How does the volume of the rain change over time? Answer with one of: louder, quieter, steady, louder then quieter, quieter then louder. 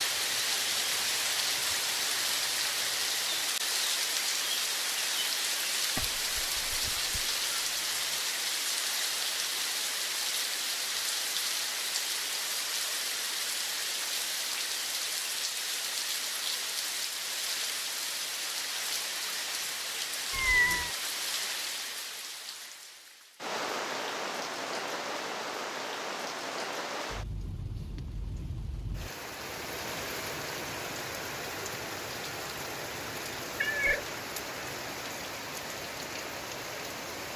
quieter.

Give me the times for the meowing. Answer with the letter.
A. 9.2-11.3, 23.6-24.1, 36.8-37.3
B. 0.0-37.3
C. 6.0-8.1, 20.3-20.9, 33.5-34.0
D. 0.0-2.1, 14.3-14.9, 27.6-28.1
C.